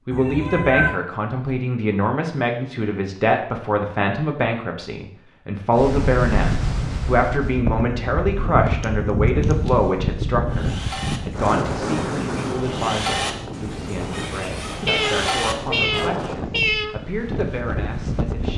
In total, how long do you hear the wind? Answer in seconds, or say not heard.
13 s.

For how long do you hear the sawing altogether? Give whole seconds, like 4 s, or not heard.
6 s.